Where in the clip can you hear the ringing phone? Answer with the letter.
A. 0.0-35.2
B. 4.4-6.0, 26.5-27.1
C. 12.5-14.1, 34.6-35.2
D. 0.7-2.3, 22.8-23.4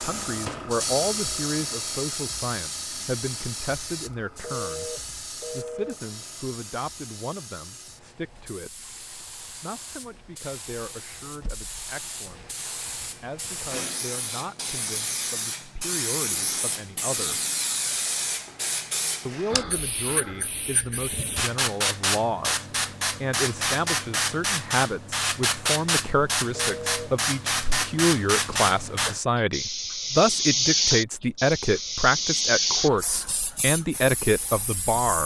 B.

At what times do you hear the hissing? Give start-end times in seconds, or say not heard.
0.0-35.2.